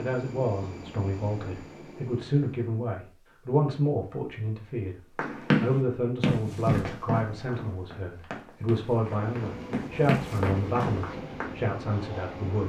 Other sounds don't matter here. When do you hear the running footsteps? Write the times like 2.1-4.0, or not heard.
5.2-11.5.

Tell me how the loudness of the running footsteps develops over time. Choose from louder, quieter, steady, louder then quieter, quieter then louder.
quieter then louder.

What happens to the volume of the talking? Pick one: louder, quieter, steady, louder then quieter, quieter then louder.
steady.